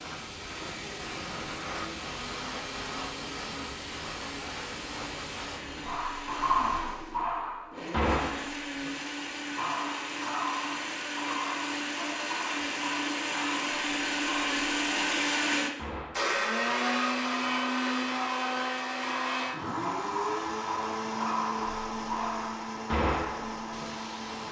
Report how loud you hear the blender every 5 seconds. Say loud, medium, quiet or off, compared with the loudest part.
quiet, medium, loud, loud, medium.